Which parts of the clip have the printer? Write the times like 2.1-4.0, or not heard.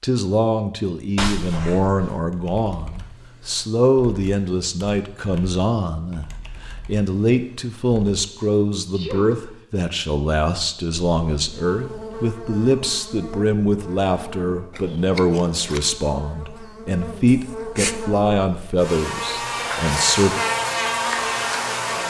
not heard.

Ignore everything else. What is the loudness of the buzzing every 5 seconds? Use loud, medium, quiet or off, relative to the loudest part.
off, off, quiet, medium, loud.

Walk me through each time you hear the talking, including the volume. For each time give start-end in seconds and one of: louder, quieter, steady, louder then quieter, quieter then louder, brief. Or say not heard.
0.0-20.4 steady.